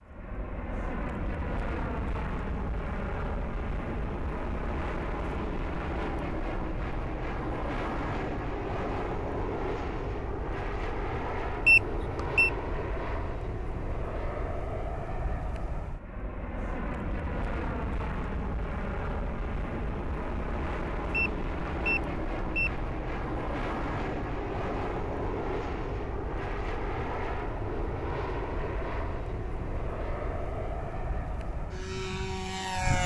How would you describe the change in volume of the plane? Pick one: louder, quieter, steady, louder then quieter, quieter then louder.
steady.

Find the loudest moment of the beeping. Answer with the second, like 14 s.
12 s.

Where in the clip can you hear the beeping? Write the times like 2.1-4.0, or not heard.
11.7-12.5, 21.1-22.7.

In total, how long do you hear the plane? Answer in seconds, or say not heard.
33 s.